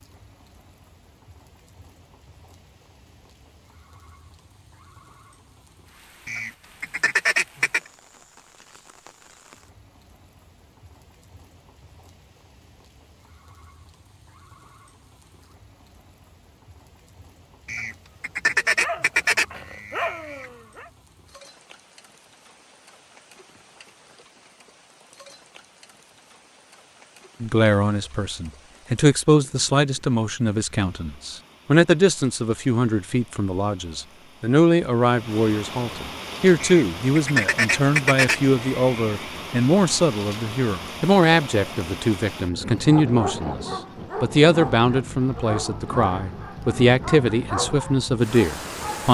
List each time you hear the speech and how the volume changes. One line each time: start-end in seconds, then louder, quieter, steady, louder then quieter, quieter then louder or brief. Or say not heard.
27.4-49.0 steady.